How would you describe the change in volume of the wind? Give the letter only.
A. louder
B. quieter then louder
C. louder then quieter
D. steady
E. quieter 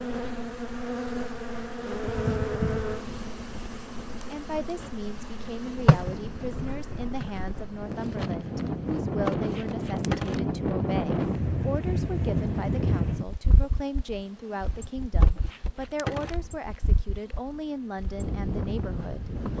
C.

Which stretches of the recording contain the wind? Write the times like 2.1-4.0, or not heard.
0.0-19.5.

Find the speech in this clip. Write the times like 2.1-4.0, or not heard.
4.3-19.5.